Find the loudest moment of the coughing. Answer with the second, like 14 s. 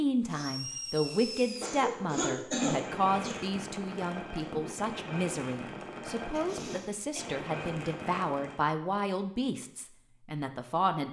3 s.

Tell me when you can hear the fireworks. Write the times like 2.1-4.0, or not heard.
0.2-8.7.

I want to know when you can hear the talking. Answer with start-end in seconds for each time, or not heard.
0.0-11.0.